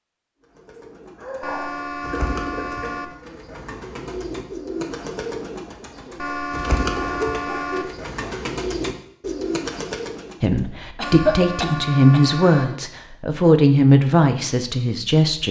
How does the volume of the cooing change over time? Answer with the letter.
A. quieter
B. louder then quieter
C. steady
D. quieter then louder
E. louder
E.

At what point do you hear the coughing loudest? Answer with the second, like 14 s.
11 s.